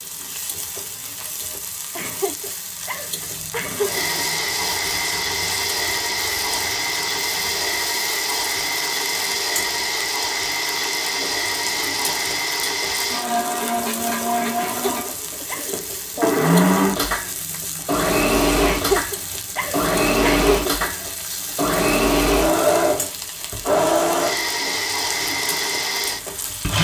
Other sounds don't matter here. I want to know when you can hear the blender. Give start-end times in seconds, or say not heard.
3.7-26.8.